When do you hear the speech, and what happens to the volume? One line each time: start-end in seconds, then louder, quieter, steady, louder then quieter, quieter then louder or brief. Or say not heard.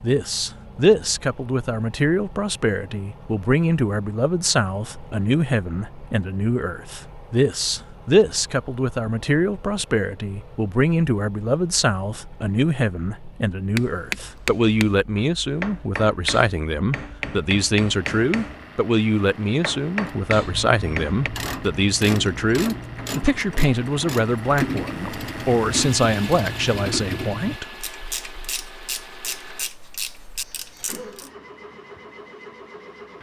0.0-27.9 steady.